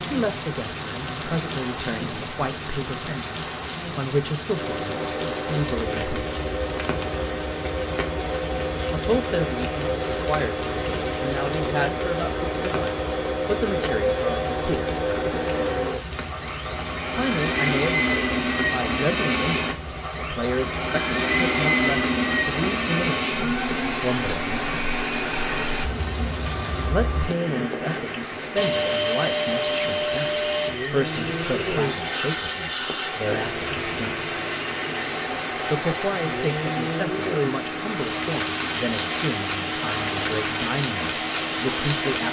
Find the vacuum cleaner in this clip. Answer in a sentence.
You can hear the vacuum cleaner from 4.5 to 42.2 s.